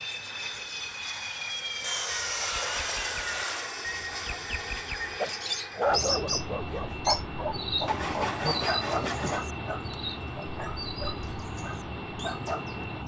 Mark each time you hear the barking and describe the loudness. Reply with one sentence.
You can hear the barking from 5.2 to 12.7 s, getting quieter.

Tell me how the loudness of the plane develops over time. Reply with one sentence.
The loudness of the plane stays about the same.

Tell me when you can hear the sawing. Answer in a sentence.
You can hear the sawing from 1.8 to 3.8 s and from 7.8 to 9.5 s.